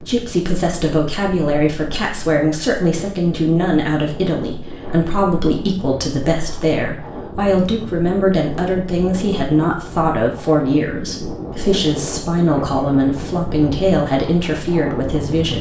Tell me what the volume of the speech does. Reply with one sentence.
The loudness of the speech stays about the same.